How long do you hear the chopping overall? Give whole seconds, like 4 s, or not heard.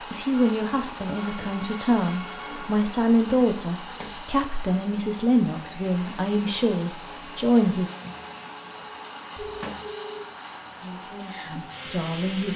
not heard.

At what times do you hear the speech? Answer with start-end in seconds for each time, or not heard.
0.1-7.9, 10.8-12.5.